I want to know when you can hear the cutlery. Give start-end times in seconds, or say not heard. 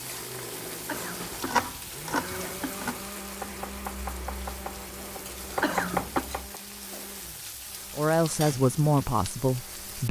not heard.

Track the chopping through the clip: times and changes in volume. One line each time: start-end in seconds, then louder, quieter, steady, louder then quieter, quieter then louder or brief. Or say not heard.
0.9-6.5 quieter then louder.